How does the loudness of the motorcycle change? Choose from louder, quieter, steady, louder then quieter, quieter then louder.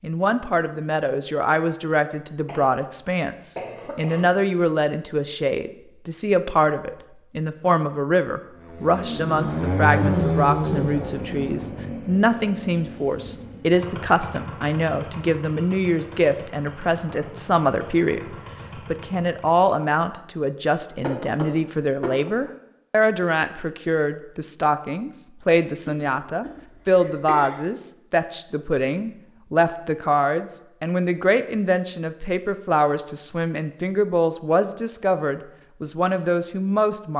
quieter.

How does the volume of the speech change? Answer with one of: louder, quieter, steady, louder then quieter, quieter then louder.
steady.